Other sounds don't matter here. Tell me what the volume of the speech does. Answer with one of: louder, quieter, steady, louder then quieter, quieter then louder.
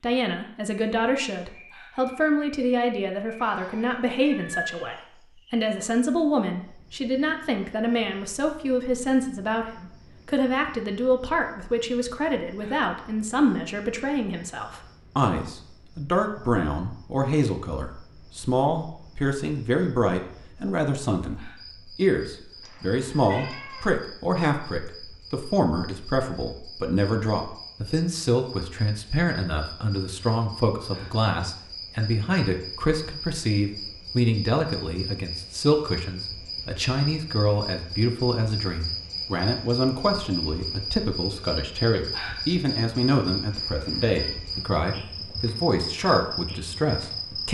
steady.